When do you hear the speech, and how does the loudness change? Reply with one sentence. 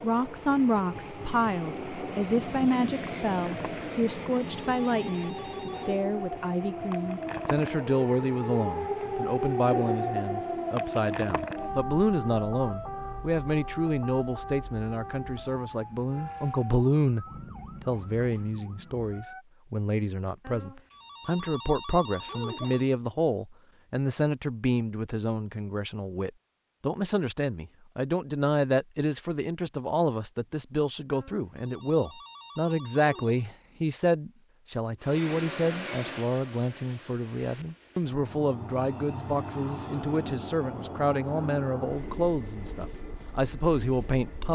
The speech can be heard from 0.0 to 44.5 s, at a steady volume.